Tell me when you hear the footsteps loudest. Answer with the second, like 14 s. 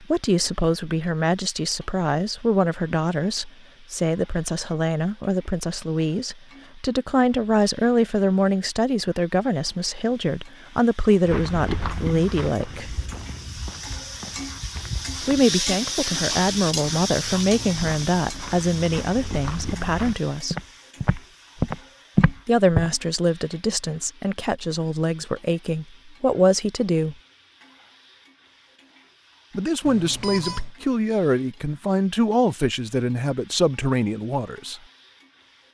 22 s.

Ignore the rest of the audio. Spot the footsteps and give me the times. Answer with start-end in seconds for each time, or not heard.
11.2-22.9.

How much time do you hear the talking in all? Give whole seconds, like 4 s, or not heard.
28 s.